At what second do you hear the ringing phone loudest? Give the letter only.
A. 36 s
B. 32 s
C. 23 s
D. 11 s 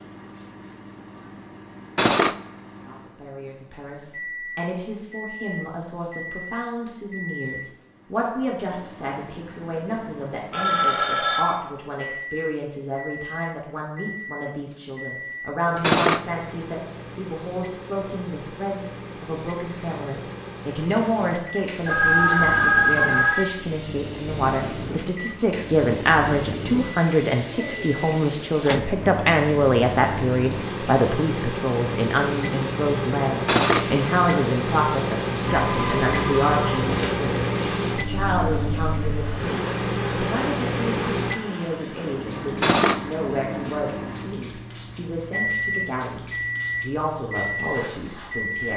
C.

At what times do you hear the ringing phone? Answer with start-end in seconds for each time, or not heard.
10.5-11.4, 21.9-23.4, 35.4-37.3.